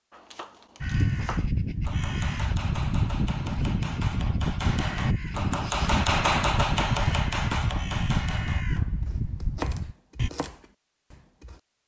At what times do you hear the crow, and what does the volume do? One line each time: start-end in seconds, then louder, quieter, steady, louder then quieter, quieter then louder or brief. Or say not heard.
0.8-10.3 steady.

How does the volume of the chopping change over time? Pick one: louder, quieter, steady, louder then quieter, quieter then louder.
louder then quieter.